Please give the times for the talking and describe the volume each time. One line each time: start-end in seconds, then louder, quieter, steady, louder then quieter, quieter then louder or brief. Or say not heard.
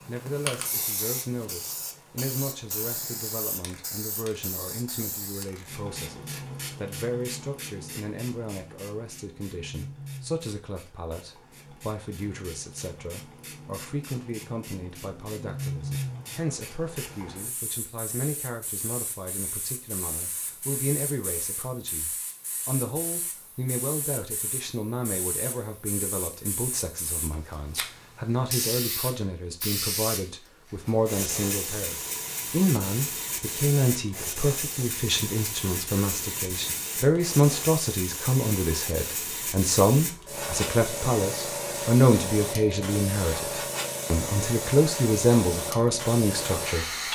0.1-46.9 louder.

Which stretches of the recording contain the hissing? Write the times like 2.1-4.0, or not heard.
0.0-47.1.